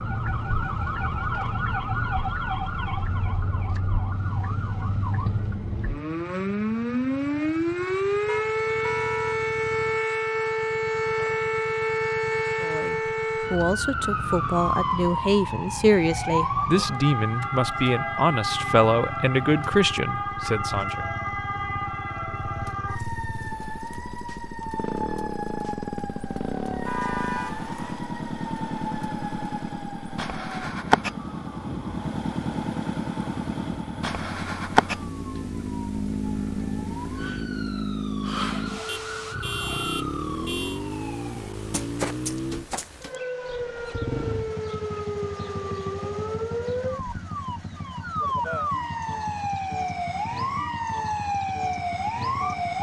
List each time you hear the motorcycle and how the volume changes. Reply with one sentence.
You can hear the motorcycle from 0.0 to 52.7 s, getting louder then quieter.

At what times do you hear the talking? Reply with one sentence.
You can hear the talking from 12.6 to 21.1 s.